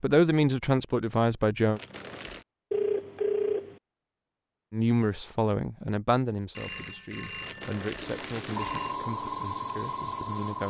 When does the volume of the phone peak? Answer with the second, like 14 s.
3 s.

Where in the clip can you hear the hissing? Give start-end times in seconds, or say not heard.
8.0-10.6.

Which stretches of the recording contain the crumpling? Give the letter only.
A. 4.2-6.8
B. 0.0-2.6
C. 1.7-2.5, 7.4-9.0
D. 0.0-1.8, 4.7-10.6
C.